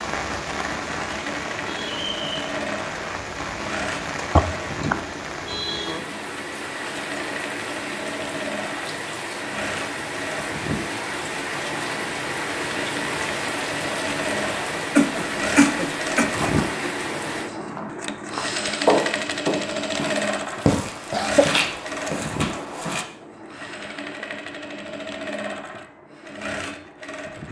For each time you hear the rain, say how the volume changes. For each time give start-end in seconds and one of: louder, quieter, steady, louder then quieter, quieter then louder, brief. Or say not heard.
0.0-17.5 steady.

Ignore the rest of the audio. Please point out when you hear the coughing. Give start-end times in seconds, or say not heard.
4.3-5.0, 14.9-16.3, 21.1-21.6.